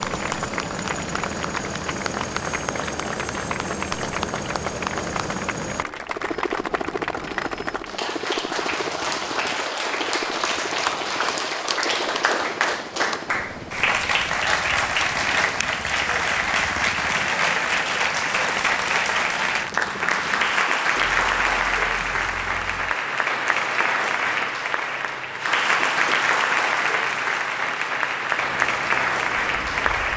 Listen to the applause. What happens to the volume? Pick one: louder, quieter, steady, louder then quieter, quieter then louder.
louder.